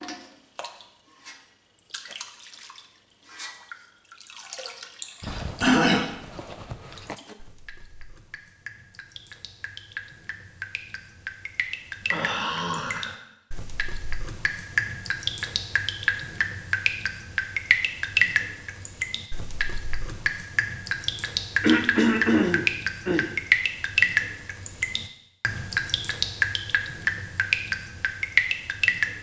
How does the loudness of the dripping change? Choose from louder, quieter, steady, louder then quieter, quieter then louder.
louder.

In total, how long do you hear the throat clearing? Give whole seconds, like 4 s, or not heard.
4 s.